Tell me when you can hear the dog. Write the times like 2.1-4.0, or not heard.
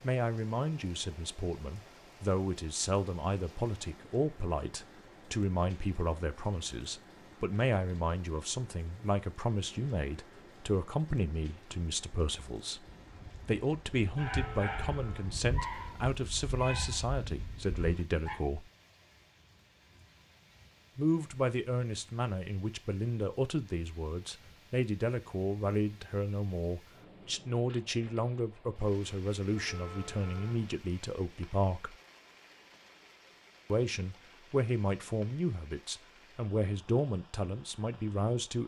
12.8-18.4.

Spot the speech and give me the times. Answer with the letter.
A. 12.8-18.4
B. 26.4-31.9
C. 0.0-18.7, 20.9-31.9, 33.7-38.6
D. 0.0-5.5
C.